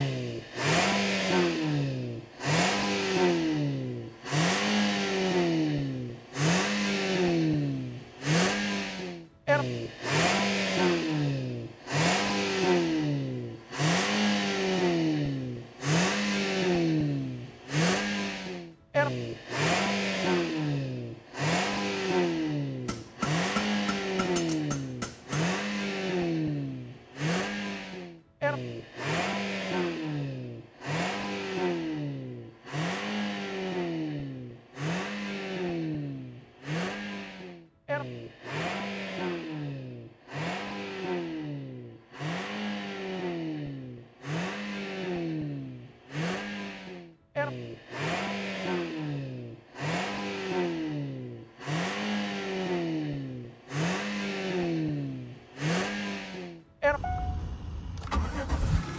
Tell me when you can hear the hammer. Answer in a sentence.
You can hear the hammer from 22.9 to 25.4 s.